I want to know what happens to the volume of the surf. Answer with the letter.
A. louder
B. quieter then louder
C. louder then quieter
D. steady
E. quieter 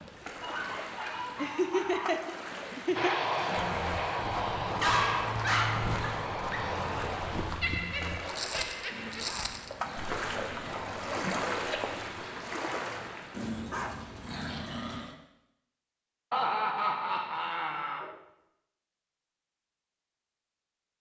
A.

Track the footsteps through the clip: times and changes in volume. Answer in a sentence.
The footsteps can be heard from 3.5 to 12.2 s, getting quieter.